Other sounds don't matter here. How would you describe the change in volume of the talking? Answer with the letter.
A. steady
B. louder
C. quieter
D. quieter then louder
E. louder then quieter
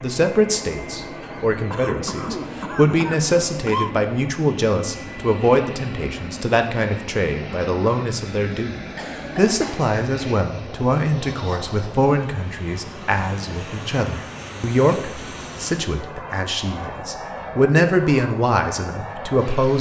A.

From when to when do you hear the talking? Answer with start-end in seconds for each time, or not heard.
0.0-19.7.